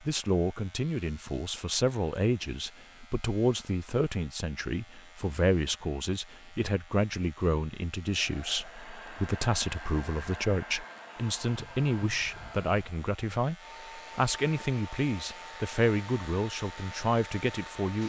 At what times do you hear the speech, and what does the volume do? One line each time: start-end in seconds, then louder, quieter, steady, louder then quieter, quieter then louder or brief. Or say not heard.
0.0-18.0 steady.